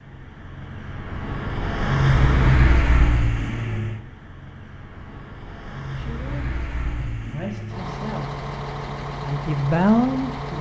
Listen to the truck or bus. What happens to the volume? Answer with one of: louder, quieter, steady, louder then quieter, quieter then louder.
quieter then louder.